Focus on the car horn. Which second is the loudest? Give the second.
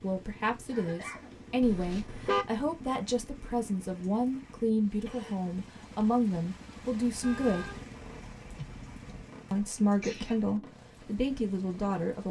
2 s.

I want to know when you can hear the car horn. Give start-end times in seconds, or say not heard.
1.6-2.5, 7.2-9.2.